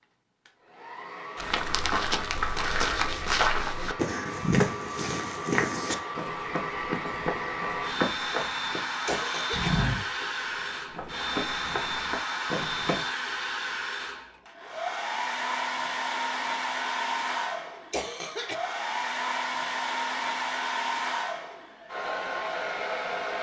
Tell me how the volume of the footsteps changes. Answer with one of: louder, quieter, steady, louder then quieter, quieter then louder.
quieter.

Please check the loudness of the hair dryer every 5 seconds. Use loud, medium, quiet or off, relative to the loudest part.
medium, loud, loud, loud, loud.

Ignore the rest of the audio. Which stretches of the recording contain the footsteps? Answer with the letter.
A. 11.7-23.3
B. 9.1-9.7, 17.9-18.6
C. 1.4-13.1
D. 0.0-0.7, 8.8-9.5
C.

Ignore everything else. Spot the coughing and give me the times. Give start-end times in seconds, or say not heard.
9.1-9.7, 17.9-18.6.